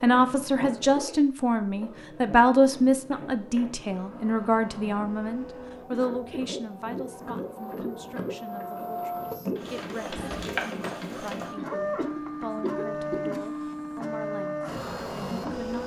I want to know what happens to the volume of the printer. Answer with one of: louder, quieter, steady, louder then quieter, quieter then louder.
louder.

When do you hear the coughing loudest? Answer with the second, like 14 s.
13 s.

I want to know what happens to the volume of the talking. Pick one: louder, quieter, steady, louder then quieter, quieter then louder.
quieter.